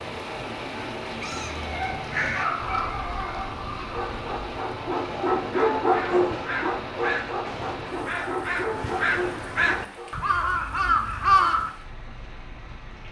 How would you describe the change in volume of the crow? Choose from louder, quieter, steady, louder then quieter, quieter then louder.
quieter then louder.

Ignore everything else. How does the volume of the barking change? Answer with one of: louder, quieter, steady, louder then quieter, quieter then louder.
louder then quieter.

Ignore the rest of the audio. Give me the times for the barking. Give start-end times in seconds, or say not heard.
1.6-10.1.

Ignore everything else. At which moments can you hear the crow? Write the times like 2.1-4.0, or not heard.
1.1-11.7.